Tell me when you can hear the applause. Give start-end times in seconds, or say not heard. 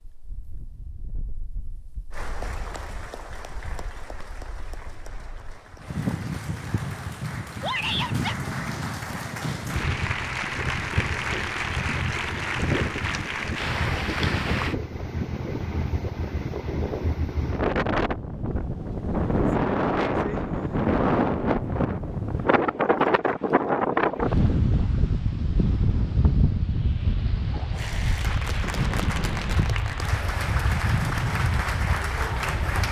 2.1-14.8, 27.7-32.8.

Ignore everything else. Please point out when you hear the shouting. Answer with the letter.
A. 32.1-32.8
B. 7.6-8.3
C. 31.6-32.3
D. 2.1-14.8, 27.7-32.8
B.